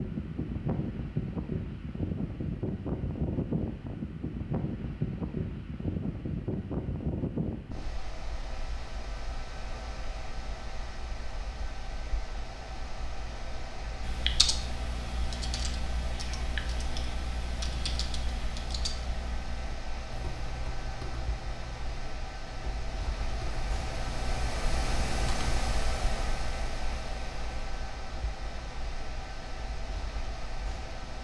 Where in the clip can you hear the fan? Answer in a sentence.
The fan can be heard from 0.0 to 31.1 s.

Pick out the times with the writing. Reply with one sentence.
The writing can't be heard in this clip.